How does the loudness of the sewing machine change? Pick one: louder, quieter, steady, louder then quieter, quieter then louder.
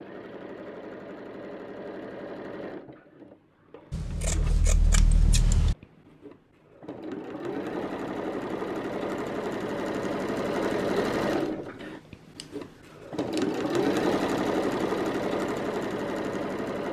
quieter then louder.